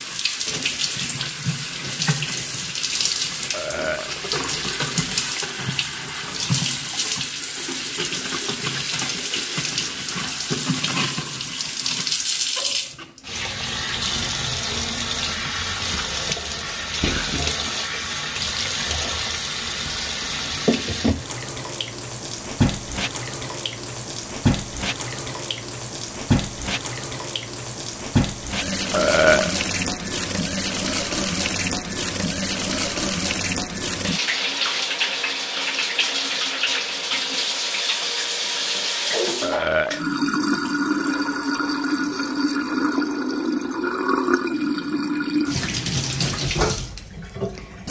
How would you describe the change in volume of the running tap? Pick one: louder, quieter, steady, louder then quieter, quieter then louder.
steady.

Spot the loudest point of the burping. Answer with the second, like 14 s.
29 s.